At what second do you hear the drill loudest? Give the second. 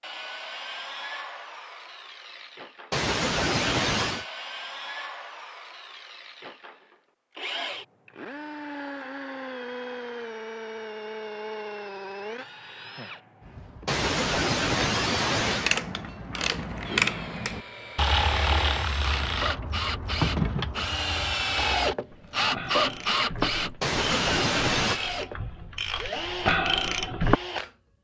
23 s.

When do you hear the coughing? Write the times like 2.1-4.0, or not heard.
2.9-4.2, 13.8-15.8, 23.8-25.0.